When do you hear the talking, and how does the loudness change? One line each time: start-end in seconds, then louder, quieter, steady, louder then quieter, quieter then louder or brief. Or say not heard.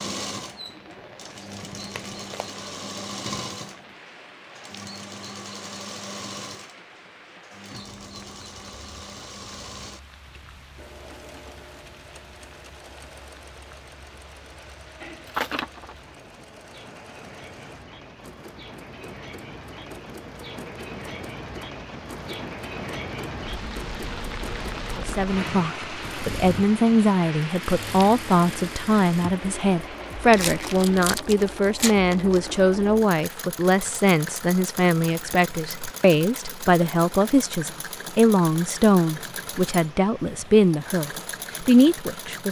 24.9-42.4 steady.